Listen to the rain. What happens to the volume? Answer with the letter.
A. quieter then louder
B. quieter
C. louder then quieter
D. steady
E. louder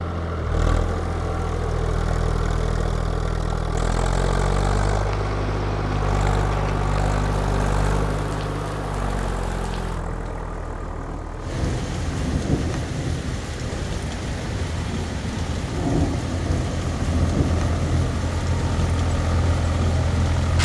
E.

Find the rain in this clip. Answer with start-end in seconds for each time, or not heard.
5.0-20.6.